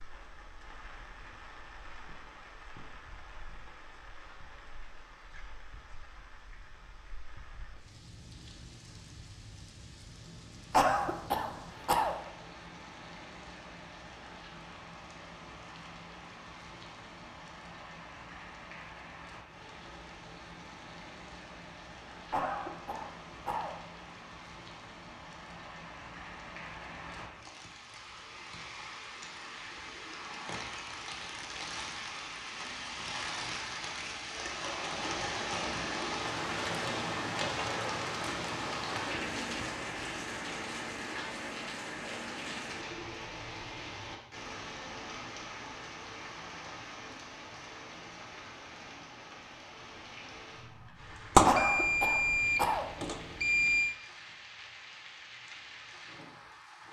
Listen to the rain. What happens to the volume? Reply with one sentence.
The volume of the rain goes up, then down.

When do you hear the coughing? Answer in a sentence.
You can hear the coughing from 10.7 to 12.2 s, from 22.3 to 23.7 s and from 51.5 to 52.9 s.